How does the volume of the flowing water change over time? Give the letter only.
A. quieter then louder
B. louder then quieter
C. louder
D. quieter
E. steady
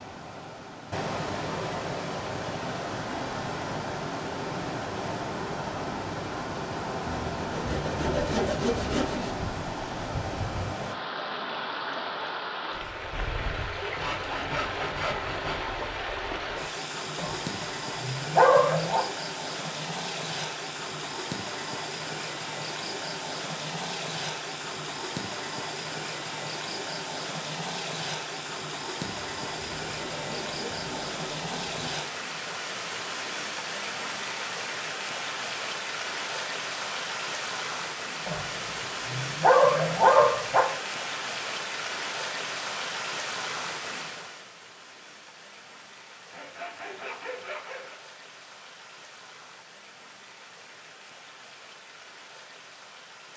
D.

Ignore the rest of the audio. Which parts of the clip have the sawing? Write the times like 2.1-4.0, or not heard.
7.0-9.3, 13.9-15.6, 29.2-32.0, 46.3-48.0.